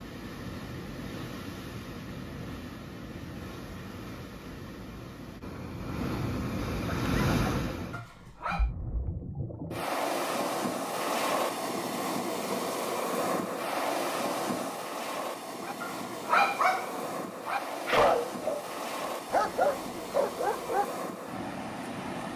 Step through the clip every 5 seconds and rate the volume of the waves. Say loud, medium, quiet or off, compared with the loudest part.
medium, loud, loud, medium, medium.